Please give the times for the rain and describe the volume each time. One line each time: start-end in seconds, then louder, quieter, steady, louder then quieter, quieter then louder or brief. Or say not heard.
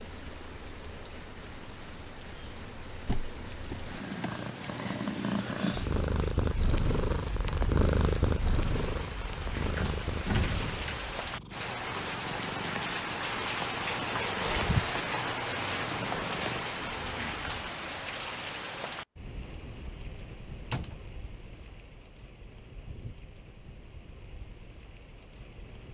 0.0-25.9 louder then quieter.